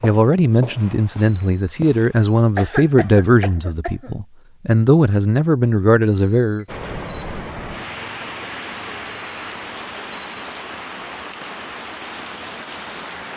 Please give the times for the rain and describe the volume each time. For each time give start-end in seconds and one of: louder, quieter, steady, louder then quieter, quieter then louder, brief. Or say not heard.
6.7-13.3 steady.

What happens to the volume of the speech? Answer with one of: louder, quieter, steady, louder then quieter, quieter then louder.
steady.